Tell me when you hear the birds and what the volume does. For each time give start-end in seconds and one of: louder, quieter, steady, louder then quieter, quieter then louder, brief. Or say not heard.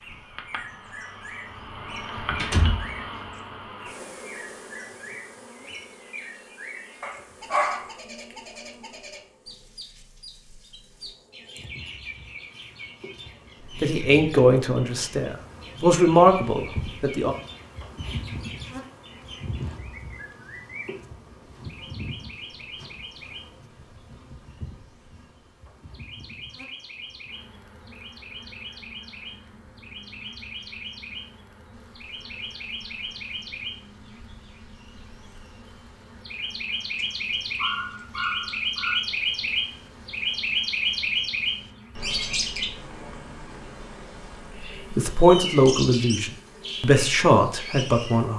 0.0-48.3 louder.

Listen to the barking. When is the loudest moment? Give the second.
8 s.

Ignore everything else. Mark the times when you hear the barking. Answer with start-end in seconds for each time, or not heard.
7.0-8.3, 37.0-39.0.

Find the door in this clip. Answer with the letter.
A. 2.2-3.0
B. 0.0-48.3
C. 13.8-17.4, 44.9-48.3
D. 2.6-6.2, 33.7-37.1
A.